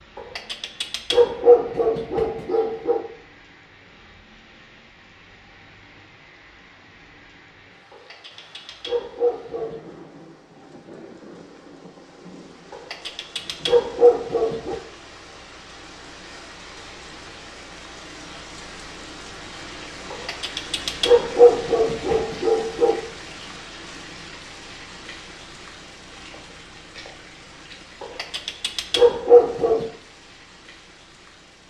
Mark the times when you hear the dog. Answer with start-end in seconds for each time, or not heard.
0.1-3.0, 7.9-9.9, 12.7-14.8, 20.1-23.0, 28.0-29.9.